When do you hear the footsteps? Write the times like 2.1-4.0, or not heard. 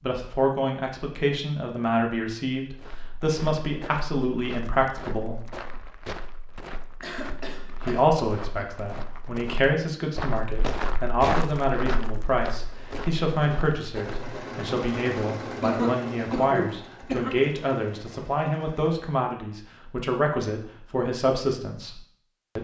2.8-14.3.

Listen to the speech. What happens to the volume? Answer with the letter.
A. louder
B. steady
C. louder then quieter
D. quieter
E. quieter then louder
B.